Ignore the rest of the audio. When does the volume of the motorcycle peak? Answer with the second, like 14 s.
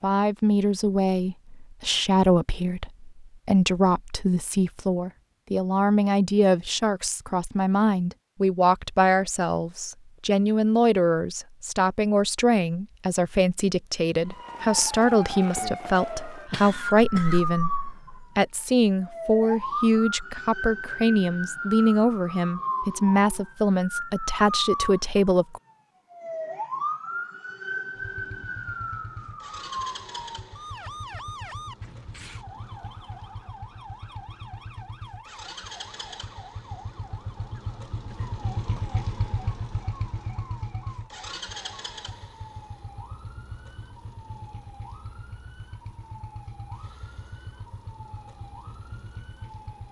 39 s.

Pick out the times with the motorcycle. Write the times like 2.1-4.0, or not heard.
27.9-49.8.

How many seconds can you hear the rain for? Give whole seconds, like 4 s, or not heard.
not heard.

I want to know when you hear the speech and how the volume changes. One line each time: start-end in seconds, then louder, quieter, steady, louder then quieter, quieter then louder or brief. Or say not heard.
0.0-25.6 steady.